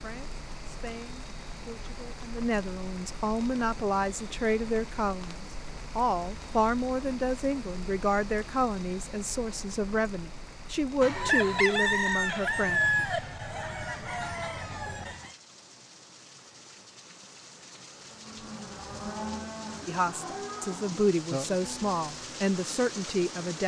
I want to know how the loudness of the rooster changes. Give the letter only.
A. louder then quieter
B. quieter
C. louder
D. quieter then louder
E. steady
B.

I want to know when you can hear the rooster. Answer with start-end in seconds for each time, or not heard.
11.0-15.3.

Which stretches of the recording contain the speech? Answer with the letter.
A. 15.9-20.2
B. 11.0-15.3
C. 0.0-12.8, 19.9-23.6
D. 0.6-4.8
C.